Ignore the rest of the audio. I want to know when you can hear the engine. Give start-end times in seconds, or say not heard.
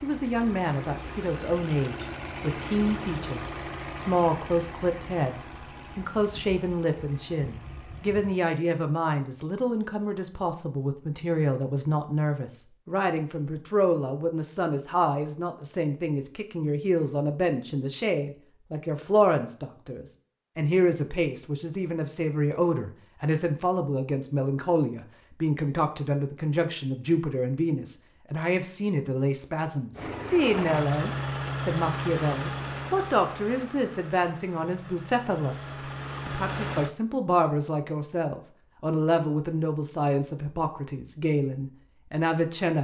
0.0-8.4, 29.9-36.9.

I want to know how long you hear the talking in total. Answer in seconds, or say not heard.
43 s.